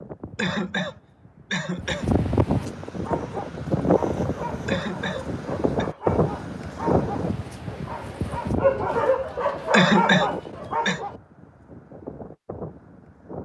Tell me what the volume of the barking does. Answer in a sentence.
The volume of the barking goes up.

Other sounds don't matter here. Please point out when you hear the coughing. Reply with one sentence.
The coughing can be heard from 0.3 to 2.1 s, from 4.7 to 5.8 s and from 9.7 to 11.0 s.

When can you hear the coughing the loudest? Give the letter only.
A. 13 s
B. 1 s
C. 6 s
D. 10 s
D.